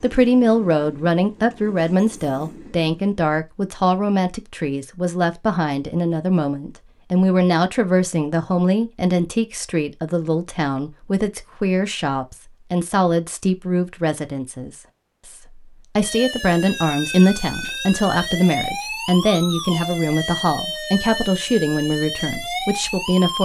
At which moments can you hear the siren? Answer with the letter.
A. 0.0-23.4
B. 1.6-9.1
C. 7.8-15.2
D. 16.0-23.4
D.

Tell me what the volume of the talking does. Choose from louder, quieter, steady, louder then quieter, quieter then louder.
steady.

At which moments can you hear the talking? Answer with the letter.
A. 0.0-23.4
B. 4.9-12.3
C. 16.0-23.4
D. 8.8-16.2
A.